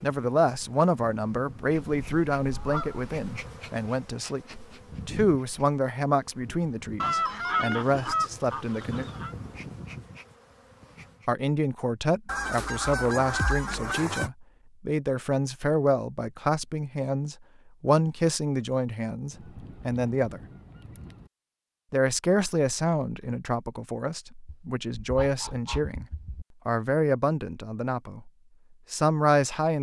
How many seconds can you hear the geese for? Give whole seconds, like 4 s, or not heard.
10 s.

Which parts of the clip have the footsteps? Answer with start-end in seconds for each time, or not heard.
not heard.